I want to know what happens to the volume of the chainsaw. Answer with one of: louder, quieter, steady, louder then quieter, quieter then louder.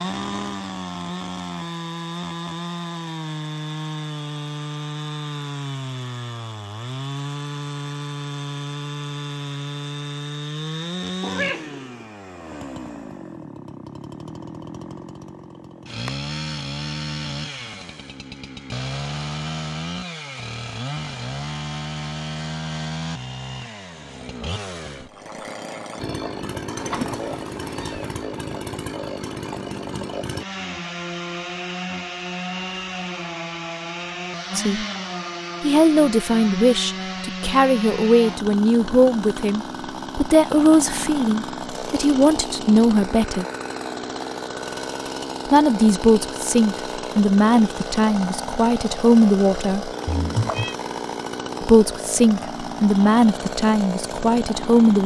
steady.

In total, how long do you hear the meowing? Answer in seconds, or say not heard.
3 s.